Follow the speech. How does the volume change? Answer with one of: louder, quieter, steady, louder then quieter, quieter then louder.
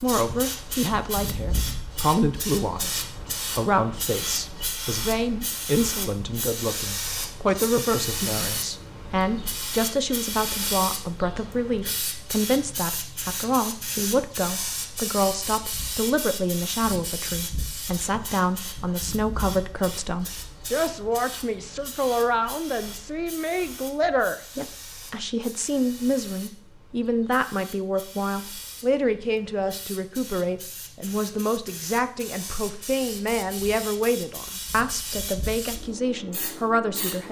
steady.